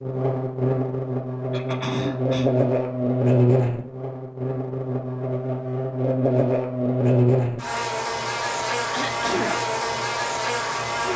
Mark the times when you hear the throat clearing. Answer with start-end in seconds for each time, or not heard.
1.5-2.5, 8.9-9.6.